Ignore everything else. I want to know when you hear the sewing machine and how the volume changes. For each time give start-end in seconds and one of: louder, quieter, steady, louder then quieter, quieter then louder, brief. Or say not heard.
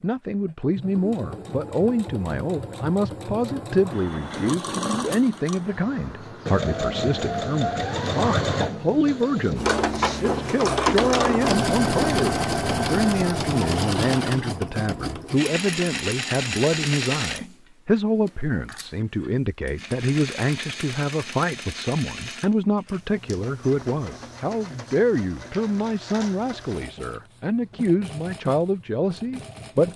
0.0-29.9 louder then quieter.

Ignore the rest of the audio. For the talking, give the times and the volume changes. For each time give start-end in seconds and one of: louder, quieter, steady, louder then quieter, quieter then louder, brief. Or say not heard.
0.0-29.9 steady.